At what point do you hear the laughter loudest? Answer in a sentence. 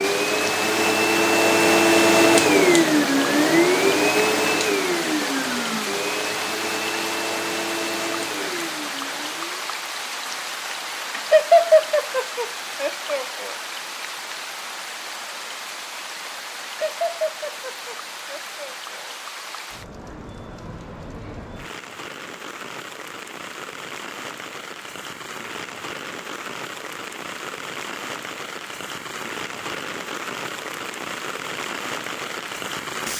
The volume of the laughter peaks at 12 seconds.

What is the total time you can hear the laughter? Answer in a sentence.
The laughter can be heard for 5 seconds in total.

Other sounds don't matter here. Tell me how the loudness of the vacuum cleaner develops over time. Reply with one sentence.
The loudness of the vacuum cleaner goes down.